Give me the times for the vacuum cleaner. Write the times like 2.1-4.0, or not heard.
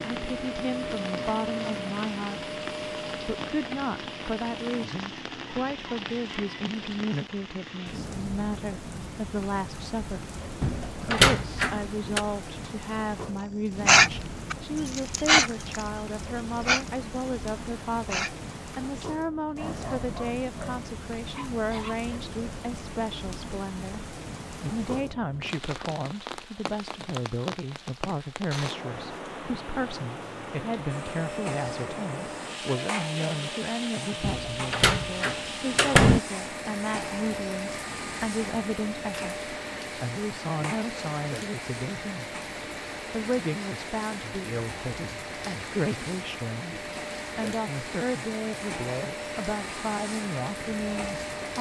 0.0-4.9, 30.9-51.5.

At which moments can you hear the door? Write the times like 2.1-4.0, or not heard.
10.6-12.2, 34.2-36.2.